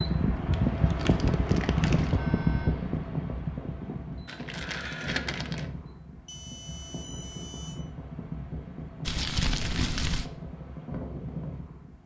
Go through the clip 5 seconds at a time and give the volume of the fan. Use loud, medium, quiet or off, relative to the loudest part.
loud, medium, medium.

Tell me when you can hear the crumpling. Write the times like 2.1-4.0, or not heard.
0.5-2.1, 4.2-5.7, 9.1-10.3.